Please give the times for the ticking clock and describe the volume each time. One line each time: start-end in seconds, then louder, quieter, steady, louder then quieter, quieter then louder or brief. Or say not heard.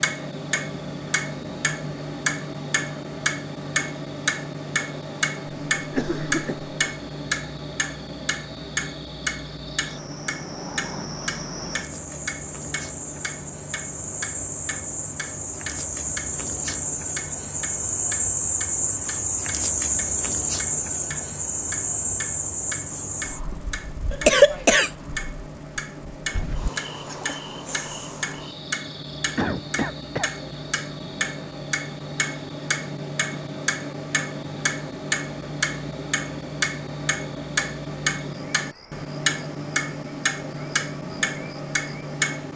0.0-42.5 quieter then louder.